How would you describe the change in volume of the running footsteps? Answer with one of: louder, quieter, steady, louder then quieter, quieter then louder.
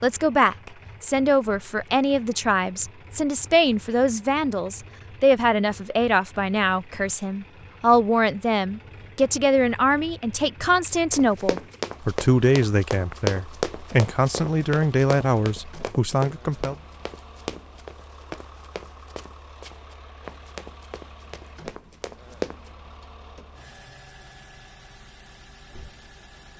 quieter.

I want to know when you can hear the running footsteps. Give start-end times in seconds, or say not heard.
11.1-22.7.